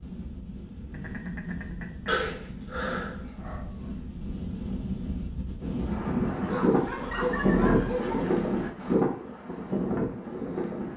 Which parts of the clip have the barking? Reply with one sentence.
You can hear the barking from 2.0 to 3.6 s and from 6.5 to 8.2 s.